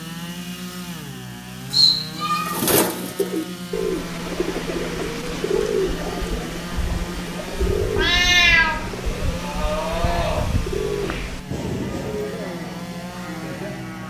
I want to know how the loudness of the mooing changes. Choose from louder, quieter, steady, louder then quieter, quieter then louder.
quieter.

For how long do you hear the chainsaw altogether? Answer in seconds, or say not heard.
14 s.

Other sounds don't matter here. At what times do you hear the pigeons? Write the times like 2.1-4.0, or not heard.
2.2-12.4.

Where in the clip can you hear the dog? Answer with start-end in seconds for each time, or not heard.
not heard.